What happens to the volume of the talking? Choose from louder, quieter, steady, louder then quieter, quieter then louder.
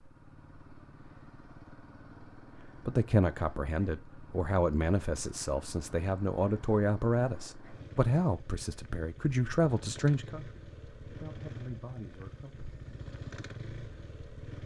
quieter.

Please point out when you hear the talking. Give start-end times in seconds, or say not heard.
2.9-12.8.